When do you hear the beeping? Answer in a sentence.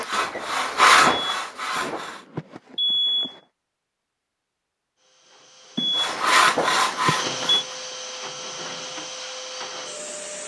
The beeping can be heard from 1.1 to 3.4 s and from 5.8 to 7.7 s.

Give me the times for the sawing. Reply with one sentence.
The sawing can be heard from 0.0 to 2.2 s and from 6.0 to 7.8 s.